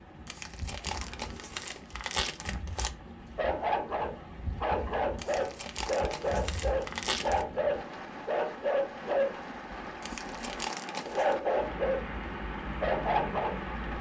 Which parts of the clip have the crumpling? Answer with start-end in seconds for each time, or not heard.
0.2-2.9, 5.2-7.5, 10.0-11.3.